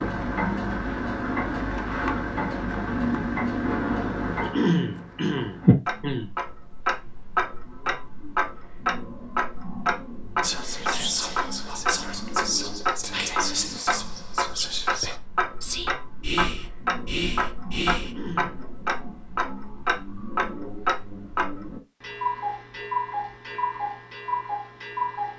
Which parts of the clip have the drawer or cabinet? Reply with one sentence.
You can't hear the drawer or cabinet here.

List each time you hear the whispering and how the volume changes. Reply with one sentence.
The whispering can be heard from 10.4 to 18.1 s, at a steady volume.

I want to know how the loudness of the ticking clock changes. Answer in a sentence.
The loudness of the ticking clock stays about the same.